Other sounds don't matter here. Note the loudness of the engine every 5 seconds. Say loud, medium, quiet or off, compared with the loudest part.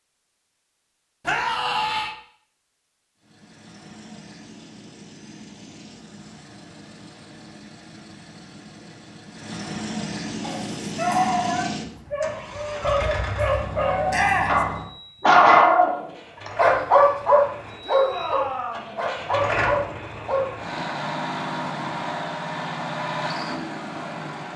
quiet, medium, loud, loud, loud.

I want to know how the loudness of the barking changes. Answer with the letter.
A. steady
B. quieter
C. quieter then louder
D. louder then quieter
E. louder
D.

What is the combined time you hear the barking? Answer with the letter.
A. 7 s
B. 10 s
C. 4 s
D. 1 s
B.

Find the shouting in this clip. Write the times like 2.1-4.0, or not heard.
1.2-2.1, 14.1-14.7, 17.8-18.9.